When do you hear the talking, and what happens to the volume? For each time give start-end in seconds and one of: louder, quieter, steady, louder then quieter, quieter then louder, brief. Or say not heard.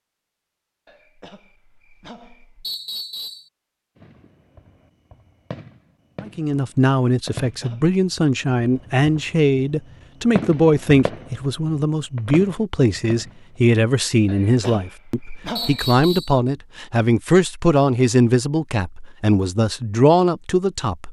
6.2-21.0 steady.